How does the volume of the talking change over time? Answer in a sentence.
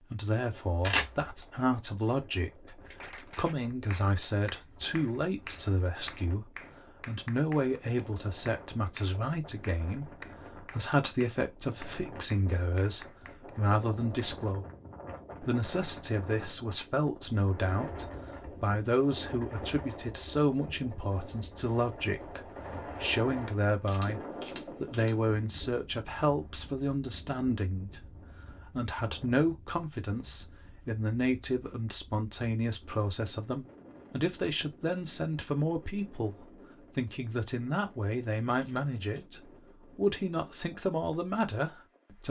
The loudness of the talking stays about the same.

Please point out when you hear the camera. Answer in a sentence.
The camera can be heard from 0.8 to 1.4 s, from 23.9 to 25.1 s and from 38.6 to 39.2 s.